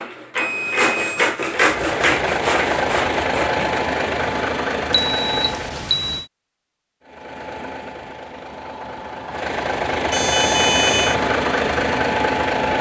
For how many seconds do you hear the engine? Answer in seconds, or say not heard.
10 s.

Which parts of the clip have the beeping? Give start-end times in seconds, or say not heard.
0.3-1.3, 4.9-6.2, 10.1-11.2.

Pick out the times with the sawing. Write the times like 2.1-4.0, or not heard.
0.0-3.8.